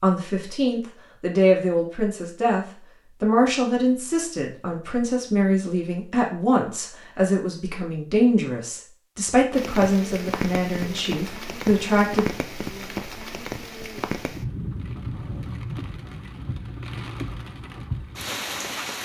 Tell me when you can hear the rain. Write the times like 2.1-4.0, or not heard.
9.5-19.0.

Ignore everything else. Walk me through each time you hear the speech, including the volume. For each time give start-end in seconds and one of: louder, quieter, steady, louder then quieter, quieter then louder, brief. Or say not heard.
0.0-12.2 steady.